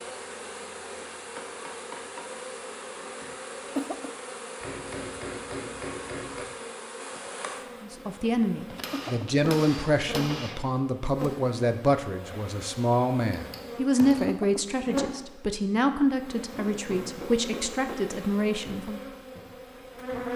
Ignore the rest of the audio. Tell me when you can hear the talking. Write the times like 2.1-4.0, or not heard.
7.8-19.0.